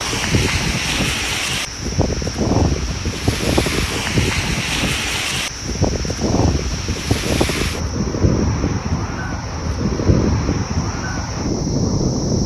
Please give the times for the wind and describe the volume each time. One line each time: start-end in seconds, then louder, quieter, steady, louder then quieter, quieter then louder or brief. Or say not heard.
0.0-12.4 steady.